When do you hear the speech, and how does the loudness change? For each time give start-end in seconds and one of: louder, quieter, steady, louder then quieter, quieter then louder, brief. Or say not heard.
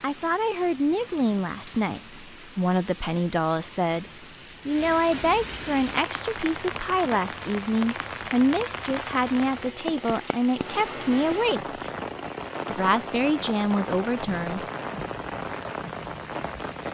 0.0-11.9 steady
12.7-14.7 brief.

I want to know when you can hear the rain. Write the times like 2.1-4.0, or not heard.
0.0-16.8.